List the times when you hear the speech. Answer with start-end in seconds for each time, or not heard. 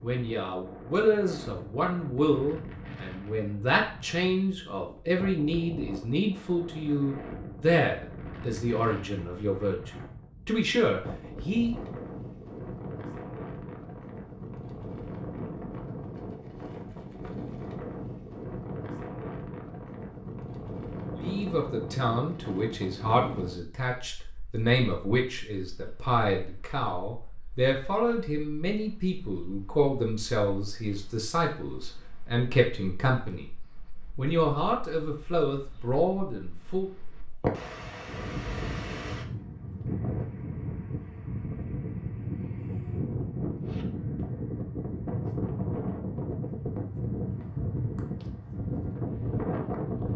0.0-12.0, 21.1-33.5, 34.1-36.9.